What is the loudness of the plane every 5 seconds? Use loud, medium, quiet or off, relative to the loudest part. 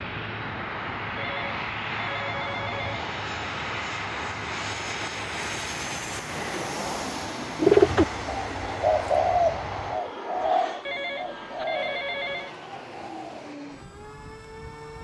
loud, loud, medium.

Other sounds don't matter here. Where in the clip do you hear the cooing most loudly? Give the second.
8 s.